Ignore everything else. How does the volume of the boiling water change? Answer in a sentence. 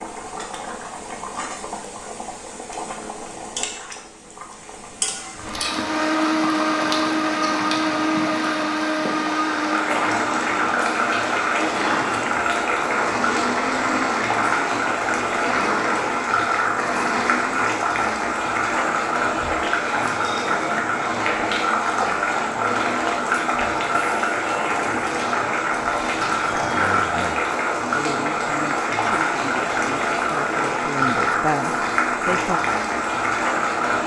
The loudness of the boiling water goes up.